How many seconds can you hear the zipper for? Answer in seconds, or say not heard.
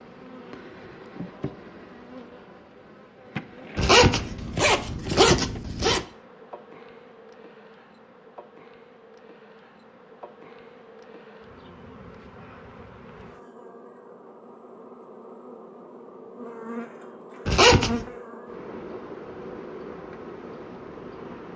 3 s.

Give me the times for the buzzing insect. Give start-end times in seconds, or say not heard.
0.0-21.5.